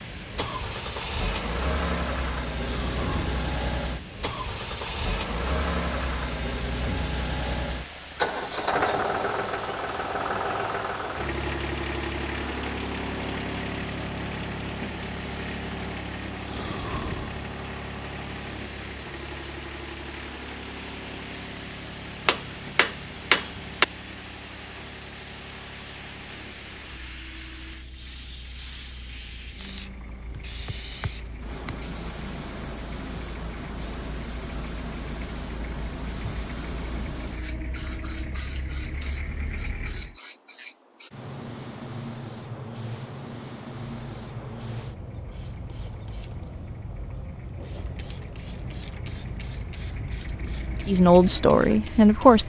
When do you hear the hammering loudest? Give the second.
23 s.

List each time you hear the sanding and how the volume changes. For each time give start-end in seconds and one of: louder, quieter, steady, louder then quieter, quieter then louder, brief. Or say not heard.
not heard.